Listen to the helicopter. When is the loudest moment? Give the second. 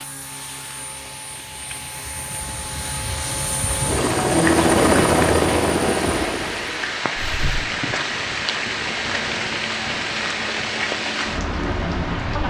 5 s.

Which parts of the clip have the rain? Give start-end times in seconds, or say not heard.
0.0-12.4.